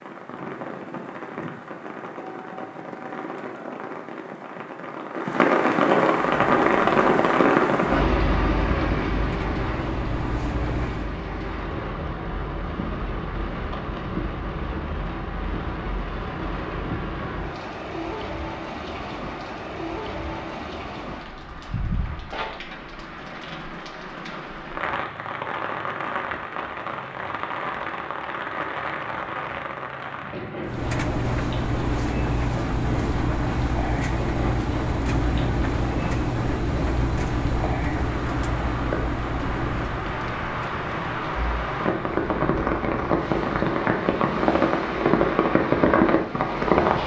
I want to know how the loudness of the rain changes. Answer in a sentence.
The volume of the rain goes down, then up.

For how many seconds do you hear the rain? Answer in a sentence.
The rain can be heard for 47 seconds in total.